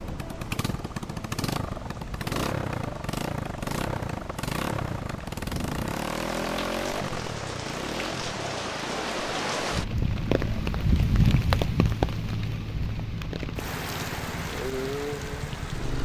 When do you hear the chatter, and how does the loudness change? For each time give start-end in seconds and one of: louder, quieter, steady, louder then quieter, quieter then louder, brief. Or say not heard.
not heard.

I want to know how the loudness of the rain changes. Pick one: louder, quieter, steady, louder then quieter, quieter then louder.
louder then quieter.